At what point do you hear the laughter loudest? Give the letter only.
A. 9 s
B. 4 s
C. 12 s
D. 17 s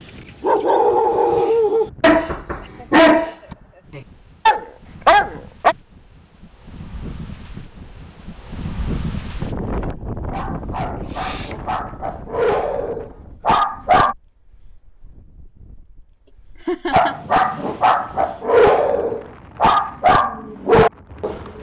D.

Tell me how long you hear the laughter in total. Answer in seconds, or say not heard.
3 s.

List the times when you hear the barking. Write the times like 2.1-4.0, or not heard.
0.0-5.8, 10.2-14.2, 16.9-21.5.